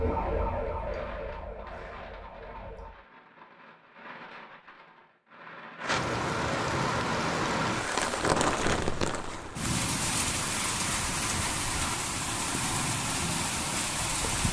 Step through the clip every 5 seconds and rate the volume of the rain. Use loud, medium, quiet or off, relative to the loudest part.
quiet, loud, loud.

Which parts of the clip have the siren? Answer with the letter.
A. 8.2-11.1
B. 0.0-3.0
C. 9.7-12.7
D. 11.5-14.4
B.